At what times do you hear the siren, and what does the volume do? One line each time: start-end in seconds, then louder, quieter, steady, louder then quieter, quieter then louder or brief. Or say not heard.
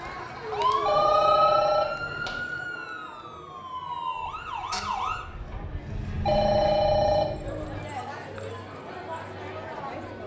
0.0-5.2 quieter then louder.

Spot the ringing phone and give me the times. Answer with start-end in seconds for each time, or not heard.
0.8-2.4, 6.2-7.5.